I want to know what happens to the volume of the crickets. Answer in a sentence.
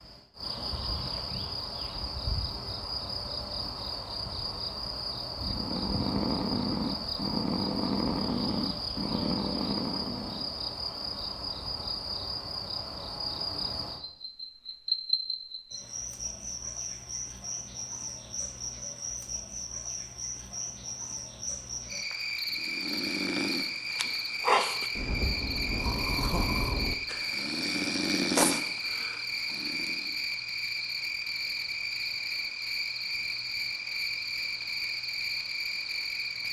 The volume of the crickets stays about the same.